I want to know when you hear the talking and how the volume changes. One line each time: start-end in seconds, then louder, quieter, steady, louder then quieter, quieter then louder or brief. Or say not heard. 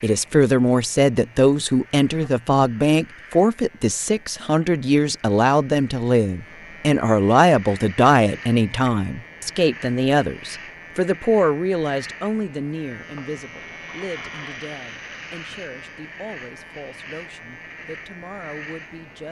0.0-19.2 quieter.